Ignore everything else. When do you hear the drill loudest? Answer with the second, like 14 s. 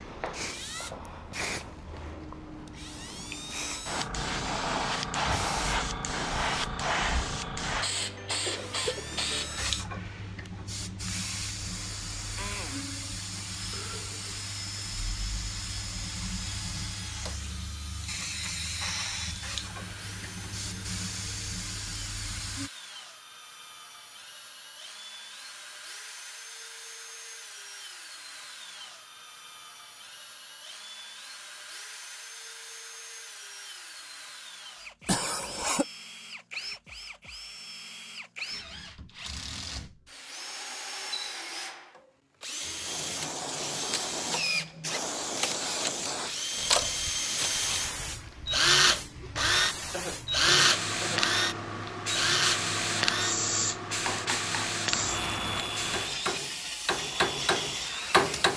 49 s.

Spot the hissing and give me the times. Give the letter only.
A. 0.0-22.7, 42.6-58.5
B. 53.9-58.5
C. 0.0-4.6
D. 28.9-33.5
A.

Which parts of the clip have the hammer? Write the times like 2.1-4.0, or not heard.
53.9-58.5.